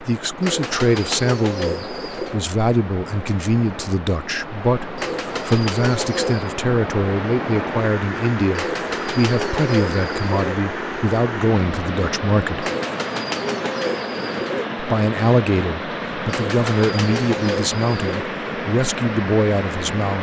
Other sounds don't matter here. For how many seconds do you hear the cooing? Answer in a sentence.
You can hear the cooing for 10 seconds altogether.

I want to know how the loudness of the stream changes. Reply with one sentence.
The volume of the stream goes up.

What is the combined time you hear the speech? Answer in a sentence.
The speech can be heard for 18 seconds in total.